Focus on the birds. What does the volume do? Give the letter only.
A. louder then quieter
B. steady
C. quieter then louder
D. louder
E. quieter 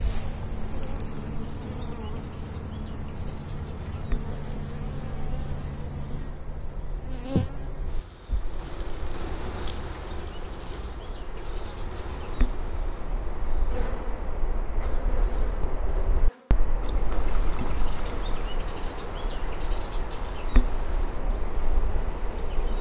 D.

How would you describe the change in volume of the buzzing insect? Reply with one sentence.
The volume of the buzzing insect goes down.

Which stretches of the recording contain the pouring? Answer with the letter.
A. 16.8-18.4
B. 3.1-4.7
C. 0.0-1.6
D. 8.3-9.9
A.